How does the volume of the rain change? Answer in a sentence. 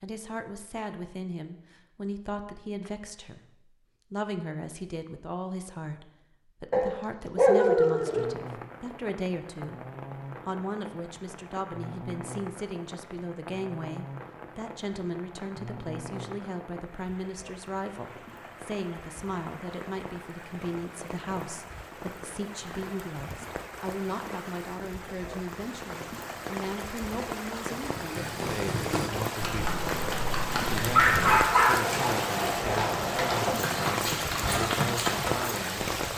The loudness of the rain goes up.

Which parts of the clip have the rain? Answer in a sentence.
You can hear the rain from 8.1 to 36.1 s.